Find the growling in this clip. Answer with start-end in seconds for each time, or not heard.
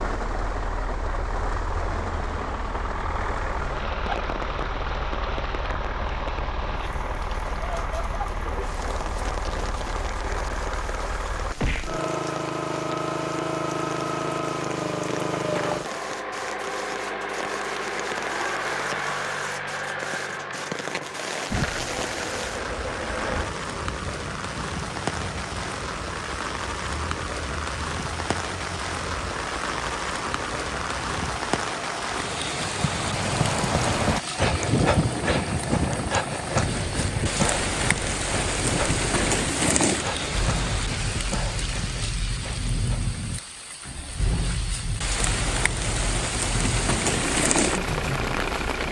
not heard.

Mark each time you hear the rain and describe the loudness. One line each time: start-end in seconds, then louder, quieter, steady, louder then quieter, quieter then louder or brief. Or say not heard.
0.0-48.8 louder.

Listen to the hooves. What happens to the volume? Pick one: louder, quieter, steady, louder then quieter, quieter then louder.
quieter.